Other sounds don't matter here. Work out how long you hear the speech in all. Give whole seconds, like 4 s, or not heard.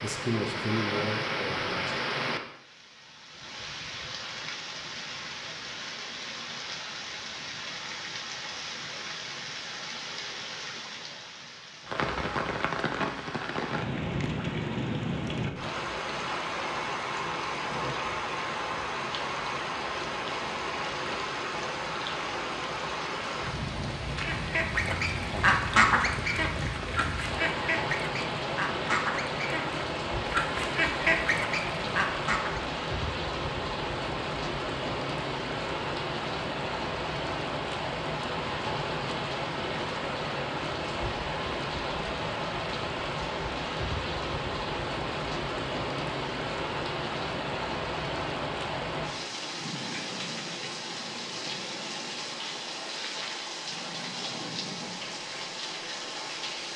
2 s.